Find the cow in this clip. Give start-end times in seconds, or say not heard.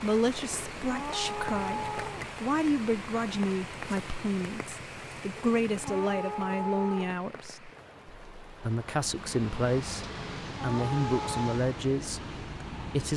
0.4-2.3, 5.3-7.2, 10.1-11.6.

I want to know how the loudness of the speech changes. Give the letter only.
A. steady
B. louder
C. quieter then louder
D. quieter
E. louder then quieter
A.